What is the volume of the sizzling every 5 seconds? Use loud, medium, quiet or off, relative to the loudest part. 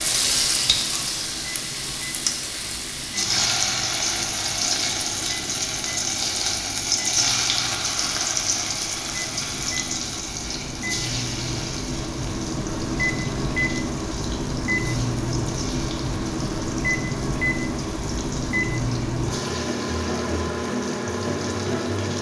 loud, loud, medium, quiet, quiet.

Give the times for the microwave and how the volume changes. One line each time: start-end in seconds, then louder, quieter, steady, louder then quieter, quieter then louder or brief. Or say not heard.
0.0-22.1 louder.